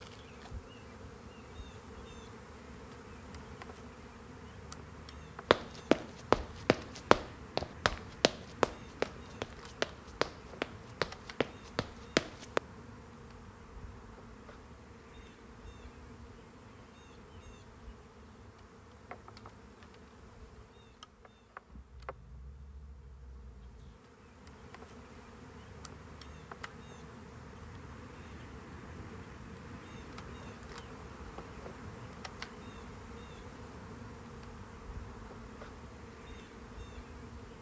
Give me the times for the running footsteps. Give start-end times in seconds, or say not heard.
5.5-12.6.